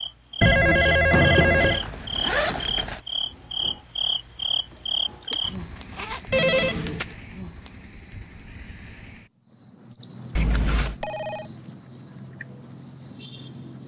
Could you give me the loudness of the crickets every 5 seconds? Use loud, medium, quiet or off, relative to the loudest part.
loud, loud, medium.